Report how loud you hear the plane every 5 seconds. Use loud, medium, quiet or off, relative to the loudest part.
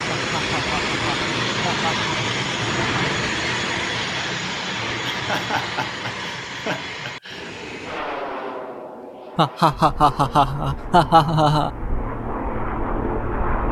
loud, medium, medium.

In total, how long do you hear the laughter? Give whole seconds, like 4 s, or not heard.
7 s.